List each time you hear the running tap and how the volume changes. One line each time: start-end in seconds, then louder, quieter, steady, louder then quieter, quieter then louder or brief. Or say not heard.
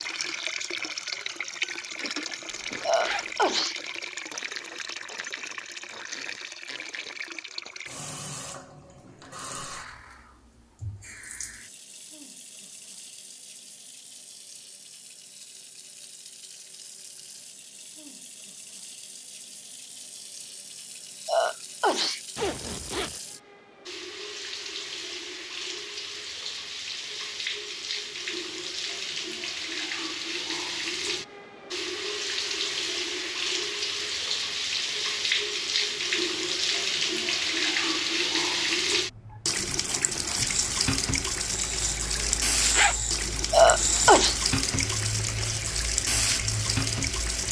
0.0-47.4 quieter then louder.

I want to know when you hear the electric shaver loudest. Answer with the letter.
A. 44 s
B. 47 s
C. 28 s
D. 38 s
A.